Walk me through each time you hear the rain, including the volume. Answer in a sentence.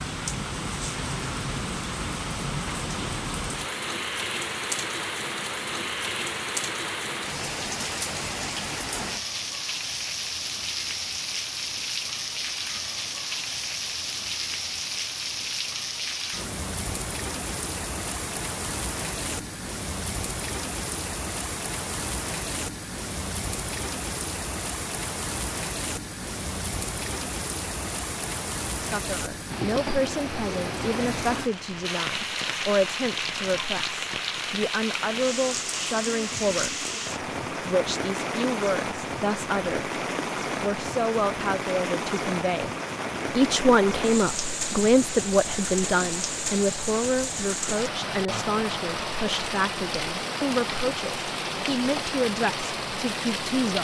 The rain can be heard from 0.0 to 53.7 s, at a steady volume.